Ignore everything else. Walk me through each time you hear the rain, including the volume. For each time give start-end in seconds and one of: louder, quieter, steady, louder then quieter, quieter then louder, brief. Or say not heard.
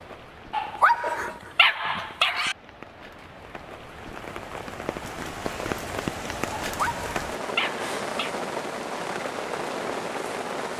0.0-10.7 louder.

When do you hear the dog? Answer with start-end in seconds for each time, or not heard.
0.5-2.5, 6.7-8.4.